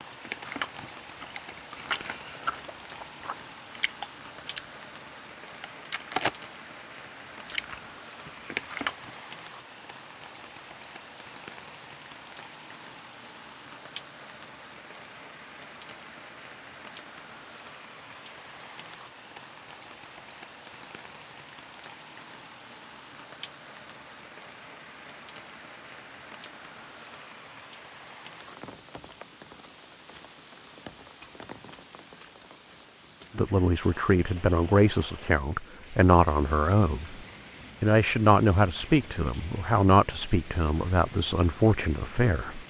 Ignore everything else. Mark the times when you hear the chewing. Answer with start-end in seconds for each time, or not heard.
0.2-4.7, 5.6-9.1.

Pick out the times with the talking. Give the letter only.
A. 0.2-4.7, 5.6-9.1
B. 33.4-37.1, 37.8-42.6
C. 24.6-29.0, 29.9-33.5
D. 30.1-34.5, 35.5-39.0
B.